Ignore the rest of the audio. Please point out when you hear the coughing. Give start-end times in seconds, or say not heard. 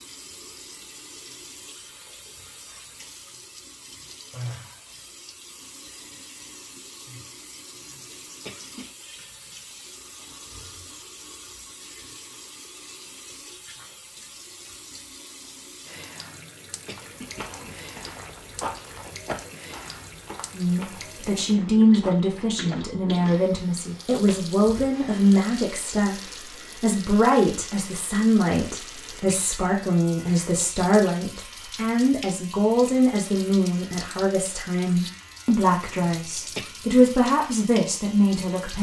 7.8-8.8, 16.2-17.8, 36.0-36.8.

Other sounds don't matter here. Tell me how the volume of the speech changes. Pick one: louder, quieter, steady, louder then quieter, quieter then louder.
steady.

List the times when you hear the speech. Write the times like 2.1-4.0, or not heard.
20.6-38.7.